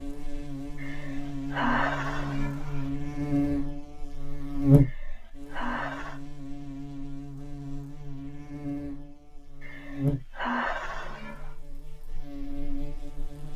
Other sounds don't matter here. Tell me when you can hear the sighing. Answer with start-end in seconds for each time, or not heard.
0.8-2.9, 4.8-6.2, 9.6-11.5.